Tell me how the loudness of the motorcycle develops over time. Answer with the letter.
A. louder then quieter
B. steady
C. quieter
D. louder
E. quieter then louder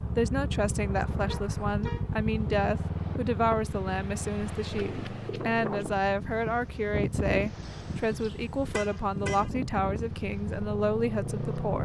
E.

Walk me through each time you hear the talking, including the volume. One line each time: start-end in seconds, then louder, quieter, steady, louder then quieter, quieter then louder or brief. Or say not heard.
0.1-11.7 steady.